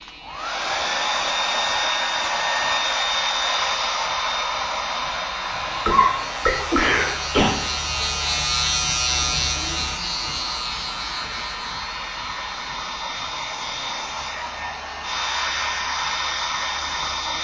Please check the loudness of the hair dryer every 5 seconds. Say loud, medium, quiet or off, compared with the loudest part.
loud, medium, medium, loud.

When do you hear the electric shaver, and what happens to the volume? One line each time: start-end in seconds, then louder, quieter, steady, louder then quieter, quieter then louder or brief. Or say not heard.
0.0-17.3 louder then quieter.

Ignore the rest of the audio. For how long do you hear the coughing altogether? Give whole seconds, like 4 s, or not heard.
2 s.